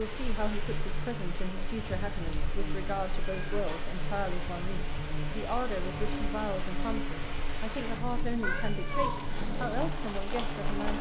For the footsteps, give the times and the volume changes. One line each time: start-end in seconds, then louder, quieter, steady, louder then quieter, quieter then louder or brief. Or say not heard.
not heard.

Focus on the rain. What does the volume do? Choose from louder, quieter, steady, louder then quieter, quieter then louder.
steady.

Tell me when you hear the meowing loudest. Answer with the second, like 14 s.
9 s.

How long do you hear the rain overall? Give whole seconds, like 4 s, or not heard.
11 s.